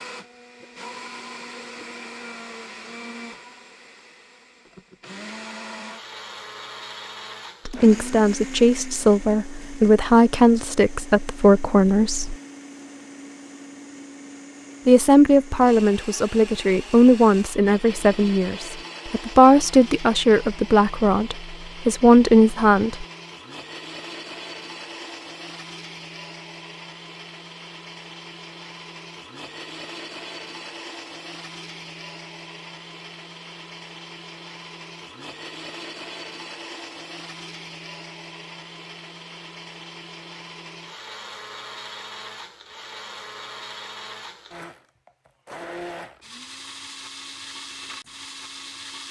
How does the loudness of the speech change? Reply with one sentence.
The volume of the speech stays about the same.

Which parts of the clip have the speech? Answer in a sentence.
The speech can be heard from 7.7 to 12.3 s and from 14.8 to 23.1 s.